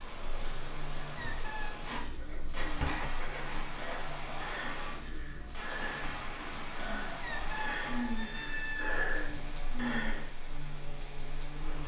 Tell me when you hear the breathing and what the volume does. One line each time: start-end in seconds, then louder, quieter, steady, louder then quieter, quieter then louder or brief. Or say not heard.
1.7-10.4 louder.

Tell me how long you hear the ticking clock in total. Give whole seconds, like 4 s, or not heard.
not heard.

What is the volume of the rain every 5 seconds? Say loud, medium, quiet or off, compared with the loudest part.
loud, loud, medium.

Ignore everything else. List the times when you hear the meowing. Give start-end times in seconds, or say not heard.
1.1-1.9, 7.2-9.1.